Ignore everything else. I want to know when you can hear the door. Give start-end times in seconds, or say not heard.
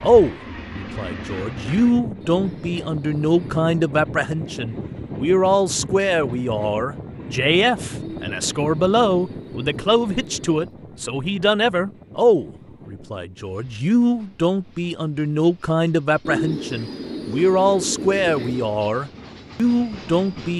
not heard.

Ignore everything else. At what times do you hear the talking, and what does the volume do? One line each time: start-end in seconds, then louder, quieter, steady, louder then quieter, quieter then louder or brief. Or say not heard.
0.0-20.5 steady.